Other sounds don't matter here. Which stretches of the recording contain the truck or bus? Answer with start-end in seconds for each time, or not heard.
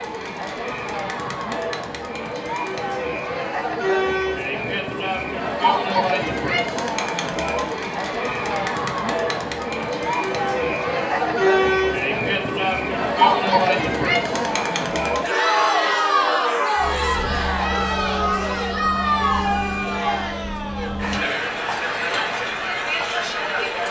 16.8-21.2.